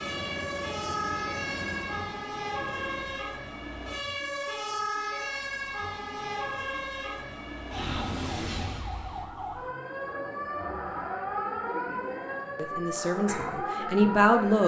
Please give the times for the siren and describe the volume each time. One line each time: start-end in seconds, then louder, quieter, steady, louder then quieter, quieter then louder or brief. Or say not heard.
0.0-14.6 steady.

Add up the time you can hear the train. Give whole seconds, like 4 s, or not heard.
3 s.